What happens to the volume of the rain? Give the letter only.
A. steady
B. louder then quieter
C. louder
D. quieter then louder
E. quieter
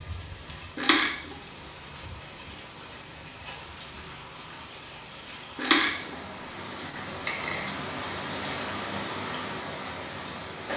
C.